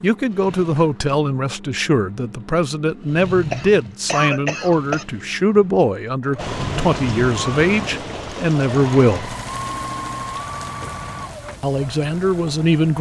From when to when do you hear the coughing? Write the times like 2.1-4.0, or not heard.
3.5-5.0.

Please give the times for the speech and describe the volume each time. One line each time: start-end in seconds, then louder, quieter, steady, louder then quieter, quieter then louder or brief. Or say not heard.
0.0-9.3 steady
11.6-12.9 brief.